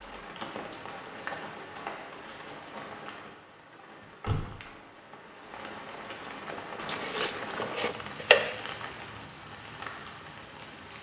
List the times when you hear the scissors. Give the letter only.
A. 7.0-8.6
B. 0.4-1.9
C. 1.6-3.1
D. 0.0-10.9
A.